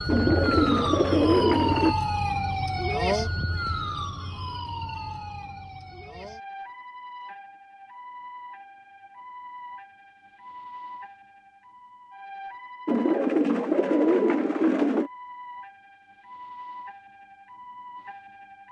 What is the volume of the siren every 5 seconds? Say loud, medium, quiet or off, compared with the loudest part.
loud, quiet, quiet, quiet.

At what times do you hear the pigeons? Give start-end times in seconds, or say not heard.
0.1-1.9, 12.8-15.1.